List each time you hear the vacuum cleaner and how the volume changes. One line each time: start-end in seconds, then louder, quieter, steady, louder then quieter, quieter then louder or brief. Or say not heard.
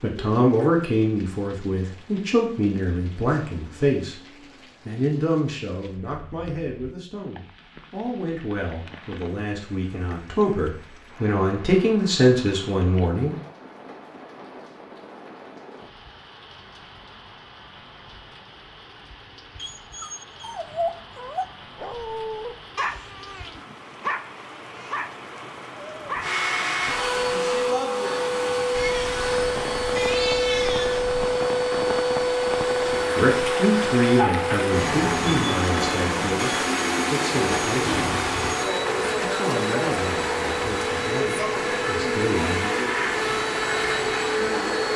26.2-44.9 steady.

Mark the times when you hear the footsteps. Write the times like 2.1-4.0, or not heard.
not heard.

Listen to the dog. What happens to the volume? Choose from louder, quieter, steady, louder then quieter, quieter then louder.
steady.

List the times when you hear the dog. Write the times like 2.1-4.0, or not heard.
19.6-26.6.